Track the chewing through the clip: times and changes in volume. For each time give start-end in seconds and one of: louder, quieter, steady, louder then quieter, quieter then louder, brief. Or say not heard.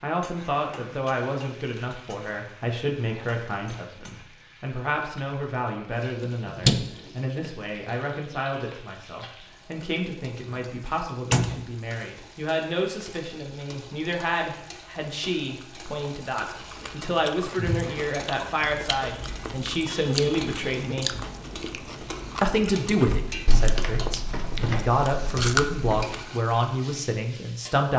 16.6-26.4 louder.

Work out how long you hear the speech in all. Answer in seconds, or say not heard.
27 s.